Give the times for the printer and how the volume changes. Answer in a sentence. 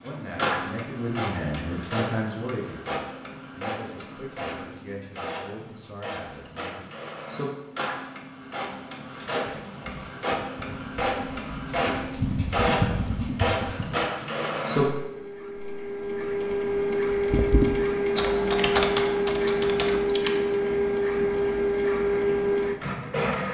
The printer can be heard from 0.0 to 23.4 s, getting louder.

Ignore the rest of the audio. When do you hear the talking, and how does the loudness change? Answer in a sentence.
The talking can be heard from 0.0 to 6.8 s, getting quieter.